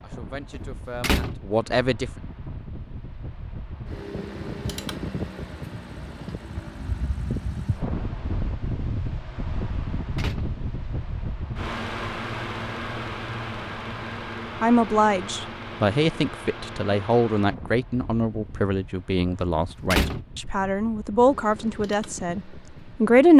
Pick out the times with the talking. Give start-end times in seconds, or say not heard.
0.0-2.1, 14.6-23.3.